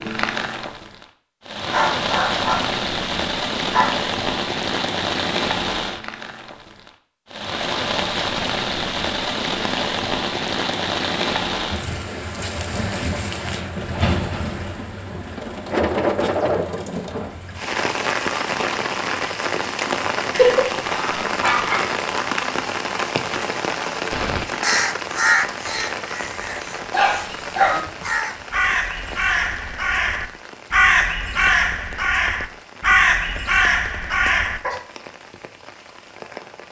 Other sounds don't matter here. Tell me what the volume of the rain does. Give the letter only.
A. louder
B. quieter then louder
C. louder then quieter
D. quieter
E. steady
D.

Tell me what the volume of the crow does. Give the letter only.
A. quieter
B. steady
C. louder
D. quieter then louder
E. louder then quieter
D.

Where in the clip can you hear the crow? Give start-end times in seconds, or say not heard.
24.1-34.8.